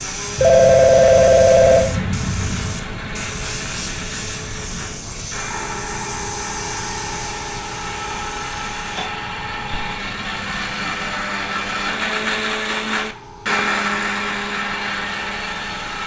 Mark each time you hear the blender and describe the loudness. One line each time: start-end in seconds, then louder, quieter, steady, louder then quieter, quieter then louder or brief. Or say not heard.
0.0-16.0 louder.